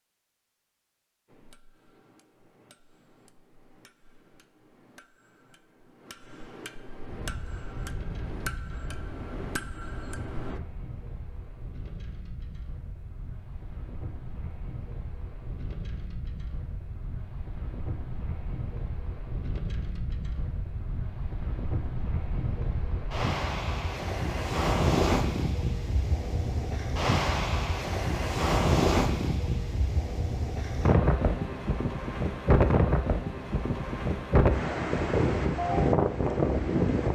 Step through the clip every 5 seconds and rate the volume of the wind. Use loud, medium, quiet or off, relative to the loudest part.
off, quiet, quiet, quiet, medium, loud, loud, loud.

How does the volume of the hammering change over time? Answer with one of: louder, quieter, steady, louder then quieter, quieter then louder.
louder.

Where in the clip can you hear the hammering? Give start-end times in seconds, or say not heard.
1.2-10.6.